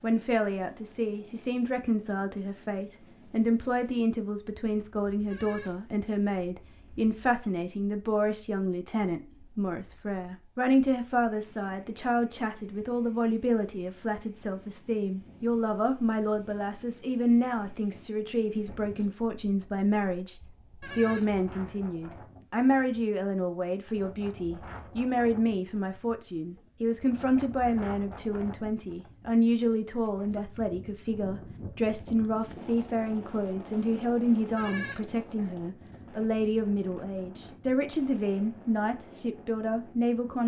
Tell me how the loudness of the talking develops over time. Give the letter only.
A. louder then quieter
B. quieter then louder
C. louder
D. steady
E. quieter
D.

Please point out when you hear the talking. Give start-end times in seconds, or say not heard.
0.0-40.4.